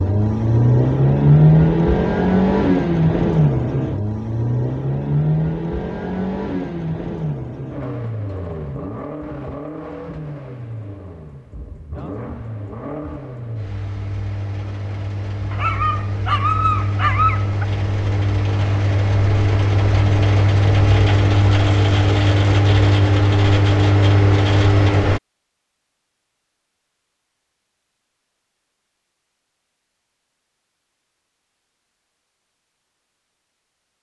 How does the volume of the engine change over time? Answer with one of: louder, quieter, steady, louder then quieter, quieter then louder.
quieter then louder.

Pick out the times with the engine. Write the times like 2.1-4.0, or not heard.
0.0-25.2.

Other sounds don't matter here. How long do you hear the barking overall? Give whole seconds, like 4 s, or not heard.
2 s.